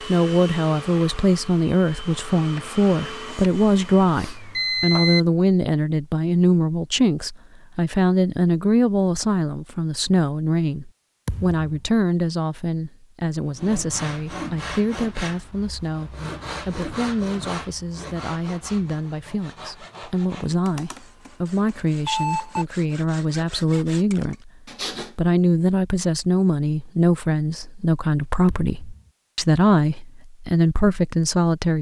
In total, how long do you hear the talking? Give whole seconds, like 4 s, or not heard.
31 s.